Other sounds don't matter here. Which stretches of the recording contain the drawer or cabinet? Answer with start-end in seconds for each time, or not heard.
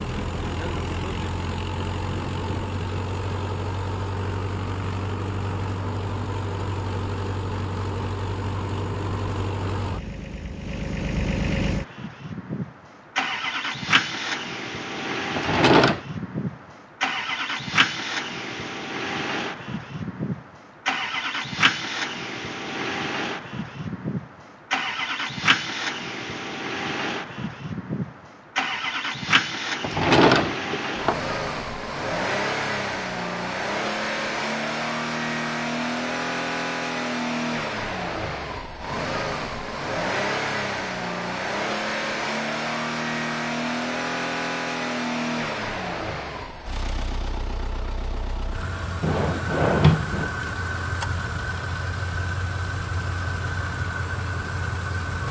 15.3-16.0, 29.8-31.1, 49.0-50.3.